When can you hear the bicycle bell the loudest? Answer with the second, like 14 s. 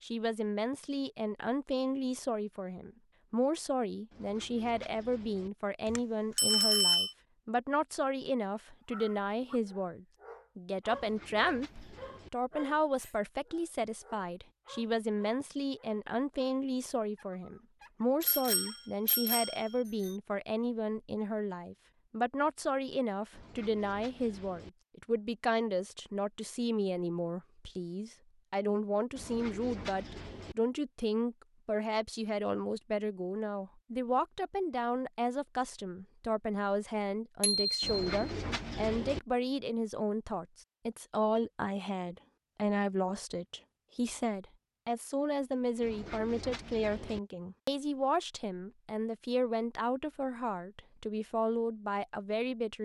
7 s.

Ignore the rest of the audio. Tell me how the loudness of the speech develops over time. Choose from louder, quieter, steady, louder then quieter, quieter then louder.
steady.